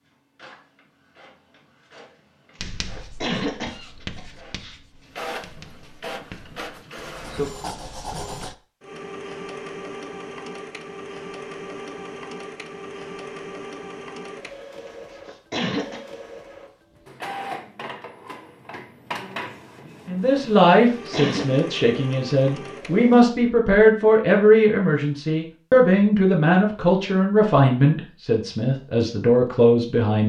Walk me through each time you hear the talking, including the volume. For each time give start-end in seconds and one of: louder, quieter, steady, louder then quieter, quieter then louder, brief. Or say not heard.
20.1-30.2 steady.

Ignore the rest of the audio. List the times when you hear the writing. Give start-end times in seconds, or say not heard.
2.5-8.6.